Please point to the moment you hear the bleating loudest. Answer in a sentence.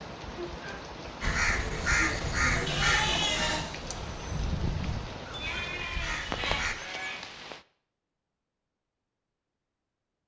The volume of the bleating peaks at 3 seconds.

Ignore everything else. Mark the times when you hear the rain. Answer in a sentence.
The rain can be heard from 0.0 to 7.7 s.